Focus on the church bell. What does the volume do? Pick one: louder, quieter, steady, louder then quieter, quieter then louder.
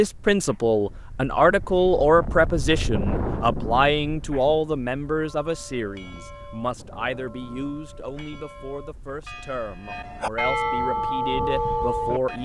louder.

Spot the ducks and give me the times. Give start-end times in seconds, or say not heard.
not heard.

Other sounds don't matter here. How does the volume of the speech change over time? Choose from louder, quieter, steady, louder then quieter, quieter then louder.
quieter.